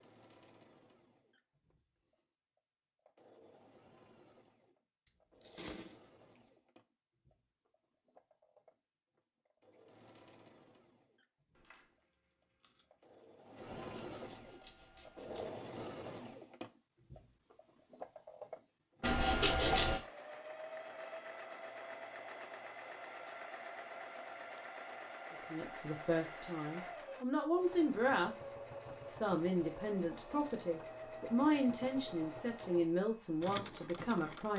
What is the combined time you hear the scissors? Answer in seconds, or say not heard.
3 s.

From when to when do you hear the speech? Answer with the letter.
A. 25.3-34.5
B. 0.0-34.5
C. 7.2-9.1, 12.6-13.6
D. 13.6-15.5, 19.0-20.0
A.